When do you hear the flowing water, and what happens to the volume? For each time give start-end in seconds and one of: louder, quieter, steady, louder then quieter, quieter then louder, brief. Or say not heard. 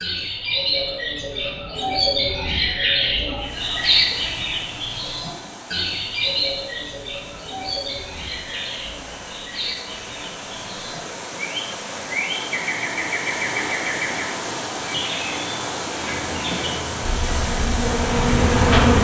3.4-18.9 louder.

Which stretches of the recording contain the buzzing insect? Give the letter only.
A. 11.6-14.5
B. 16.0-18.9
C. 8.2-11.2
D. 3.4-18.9
B.